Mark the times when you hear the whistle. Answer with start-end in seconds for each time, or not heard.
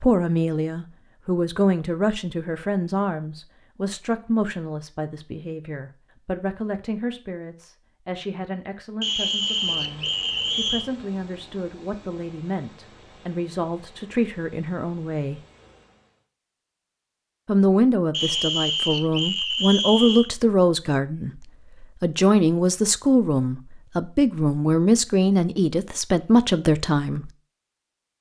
9.0-10.9, 18.1-20.3.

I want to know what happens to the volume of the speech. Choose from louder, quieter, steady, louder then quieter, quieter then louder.
quieter then louder.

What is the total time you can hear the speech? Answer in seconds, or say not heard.
25 s.